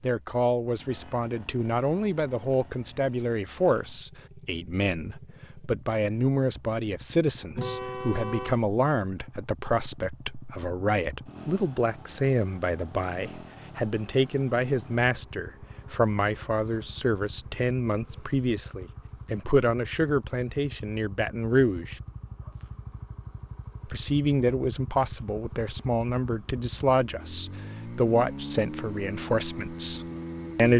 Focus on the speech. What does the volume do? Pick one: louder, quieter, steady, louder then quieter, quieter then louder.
steady.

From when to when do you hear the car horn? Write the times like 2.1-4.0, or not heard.
7.5-8.6.